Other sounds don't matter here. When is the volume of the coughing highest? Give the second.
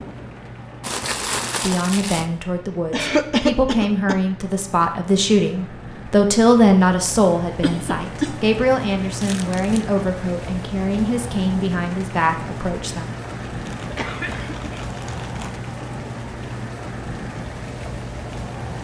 3 s.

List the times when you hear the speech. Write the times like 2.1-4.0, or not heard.
1.6-13.1.